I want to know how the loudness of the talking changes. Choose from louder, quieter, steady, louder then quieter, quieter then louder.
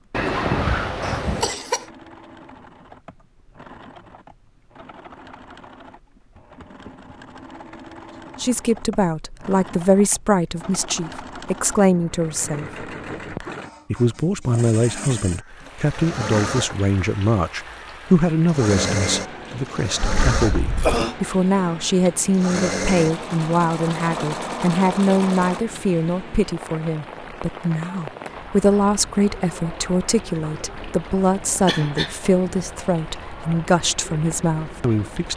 steady.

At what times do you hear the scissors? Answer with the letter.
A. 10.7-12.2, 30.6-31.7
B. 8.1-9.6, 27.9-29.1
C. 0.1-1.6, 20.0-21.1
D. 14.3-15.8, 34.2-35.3
C.